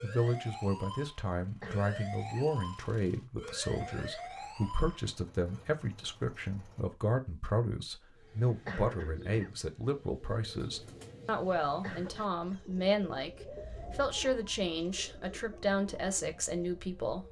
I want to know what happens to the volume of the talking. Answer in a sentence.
The loudness of the talking stays about the same.